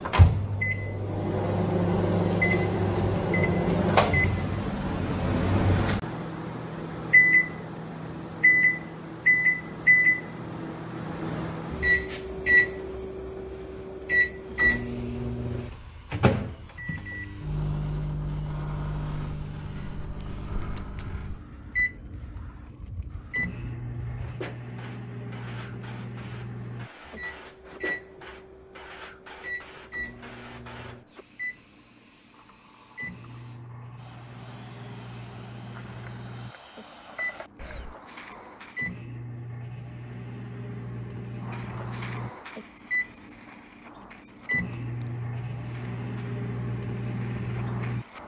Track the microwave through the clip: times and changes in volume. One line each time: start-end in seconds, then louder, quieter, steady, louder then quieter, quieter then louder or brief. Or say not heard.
0.0-48.2 quieter then louder.